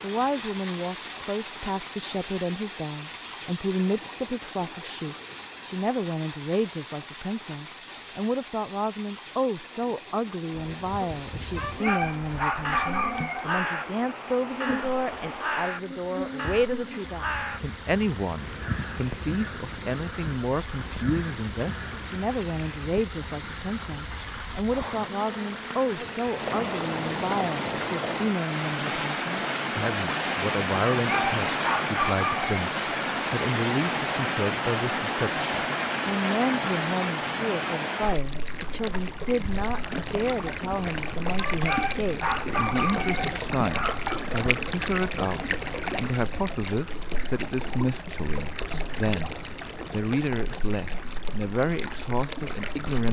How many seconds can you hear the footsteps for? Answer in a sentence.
The footsteps can't be heard in this clip.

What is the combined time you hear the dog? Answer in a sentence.
You can hear the dog for 6 seconds altogether.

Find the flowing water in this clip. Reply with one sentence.
The flowing water can be heard from 0.0 to 53.0 s.